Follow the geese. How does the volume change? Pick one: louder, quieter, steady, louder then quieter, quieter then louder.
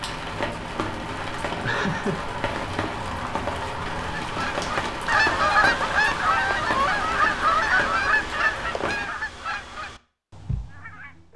quieter.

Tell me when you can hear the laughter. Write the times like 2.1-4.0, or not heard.
1.6-2.2.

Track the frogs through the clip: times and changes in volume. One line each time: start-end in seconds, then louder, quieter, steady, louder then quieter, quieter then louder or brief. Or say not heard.
not heard.